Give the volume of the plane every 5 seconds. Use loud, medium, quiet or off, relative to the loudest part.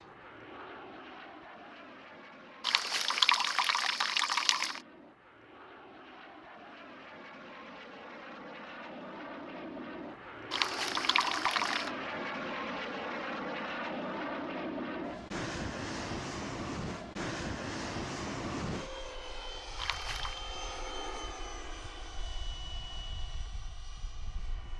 quiet, medium, loud, loud, medium.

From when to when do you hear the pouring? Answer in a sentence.
You can hear the pouring from 2.6 to 4.8 s, from 10.5 to 11.9 s and from 19.8 to 20.4 s.